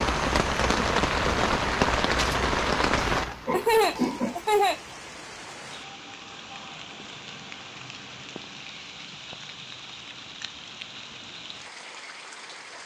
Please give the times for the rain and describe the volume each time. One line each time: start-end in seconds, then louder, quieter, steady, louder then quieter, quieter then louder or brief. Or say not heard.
0.0-12.8 quieter.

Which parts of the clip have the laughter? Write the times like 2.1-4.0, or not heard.
3.1-4.8.